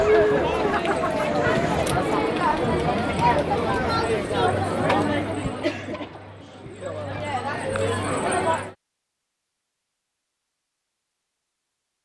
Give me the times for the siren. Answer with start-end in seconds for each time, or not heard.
0.0-1.9.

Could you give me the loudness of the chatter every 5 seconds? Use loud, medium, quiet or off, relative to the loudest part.
loud, medium, off.